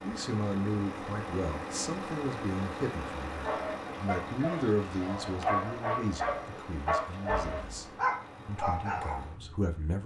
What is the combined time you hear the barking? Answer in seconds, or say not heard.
6 s.